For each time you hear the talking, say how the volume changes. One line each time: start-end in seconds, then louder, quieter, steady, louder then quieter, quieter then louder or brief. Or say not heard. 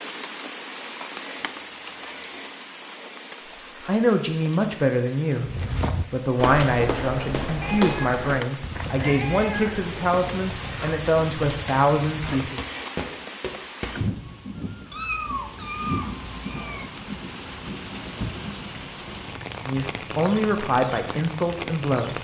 3.8-12.6 steady
19.6-22.1 brief.